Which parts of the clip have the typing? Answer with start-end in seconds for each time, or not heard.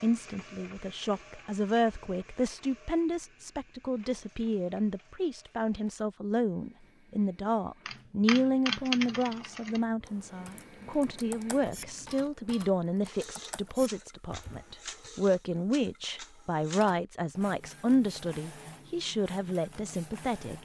7.8-15.1.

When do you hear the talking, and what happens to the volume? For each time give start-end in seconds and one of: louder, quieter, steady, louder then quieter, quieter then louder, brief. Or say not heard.
0.0-20.5 steady.